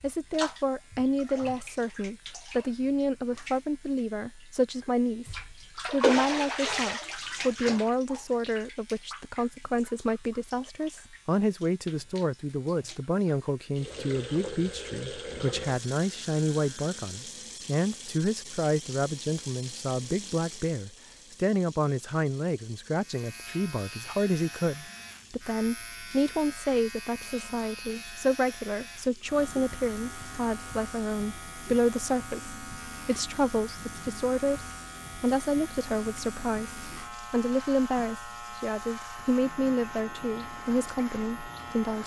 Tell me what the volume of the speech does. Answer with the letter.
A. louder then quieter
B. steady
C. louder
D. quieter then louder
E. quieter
B.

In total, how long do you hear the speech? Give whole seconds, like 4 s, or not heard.
42 s.